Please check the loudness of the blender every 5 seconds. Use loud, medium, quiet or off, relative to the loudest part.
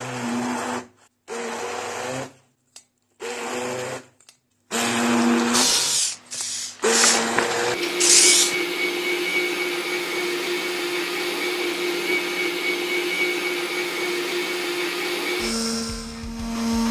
medium, loud, loud, loud.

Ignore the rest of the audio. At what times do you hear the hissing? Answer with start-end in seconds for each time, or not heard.
5.5-8.6.